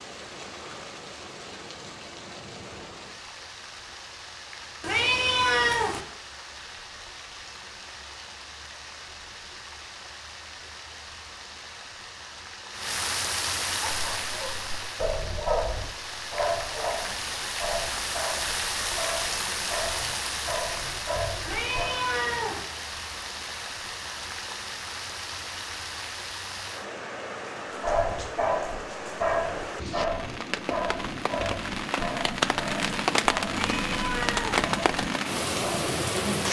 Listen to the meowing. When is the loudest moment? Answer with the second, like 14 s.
6 s.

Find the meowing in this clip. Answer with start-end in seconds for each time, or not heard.
4.8-6.0, 21.4-22.6, 33.6-34.6.